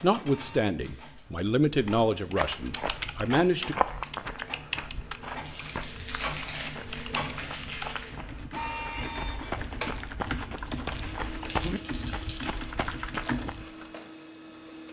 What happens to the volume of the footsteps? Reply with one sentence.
The volume of the footsteps goes down, then up.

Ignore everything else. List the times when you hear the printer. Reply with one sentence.
The printer can be heard from 0.0 to 14.8 s.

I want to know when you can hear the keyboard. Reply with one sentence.
You can hear the keyboard from 1.8 to 13.6 s.